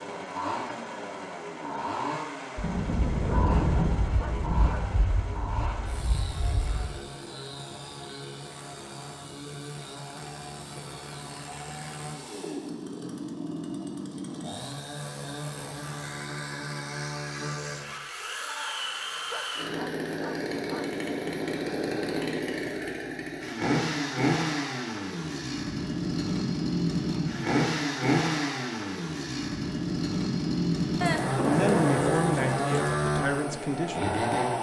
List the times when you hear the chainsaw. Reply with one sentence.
You can hear the chainsaw from 0.0 to 34.5 s.